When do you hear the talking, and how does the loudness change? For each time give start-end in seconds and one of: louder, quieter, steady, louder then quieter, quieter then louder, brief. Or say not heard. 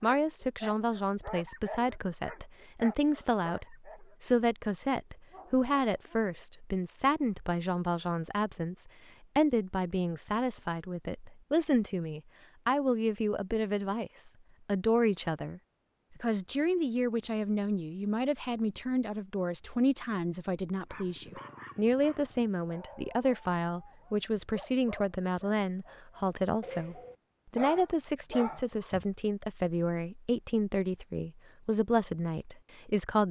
0.0-33.2 steady.